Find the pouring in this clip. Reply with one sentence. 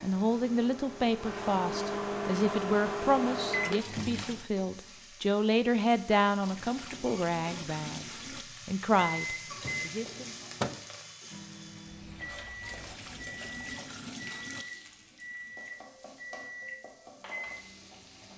The pouring can be heard from 3.8 to 4.5 s, from 6.4 to 8.4 s and from 12.6 to 14.7 s.